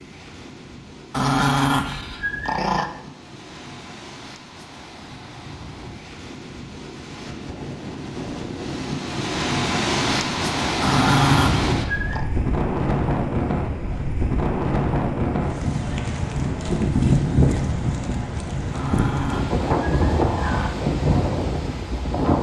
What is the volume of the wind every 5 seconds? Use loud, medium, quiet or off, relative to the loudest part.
quiet, medium, loud, loud, loud.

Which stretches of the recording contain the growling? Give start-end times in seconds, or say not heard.
1.1-2.9, 10.8-12.2, 18.7-20.7.